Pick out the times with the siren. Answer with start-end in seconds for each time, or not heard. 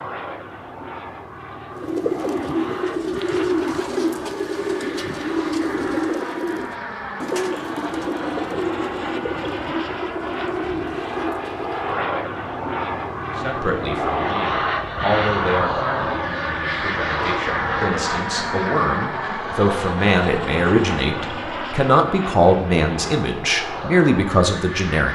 not heard.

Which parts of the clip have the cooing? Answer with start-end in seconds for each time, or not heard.
1.7-12.1.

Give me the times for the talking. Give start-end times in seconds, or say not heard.
13.4-25.0.